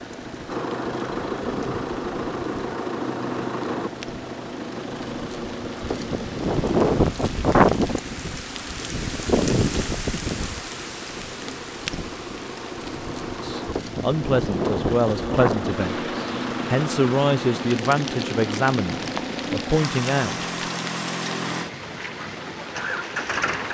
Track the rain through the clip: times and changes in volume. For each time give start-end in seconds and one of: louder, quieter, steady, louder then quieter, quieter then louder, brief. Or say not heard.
0.0-23.6 louder then quieter.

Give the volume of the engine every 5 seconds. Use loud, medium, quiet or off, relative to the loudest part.
loud, medium, medium, loud, loud.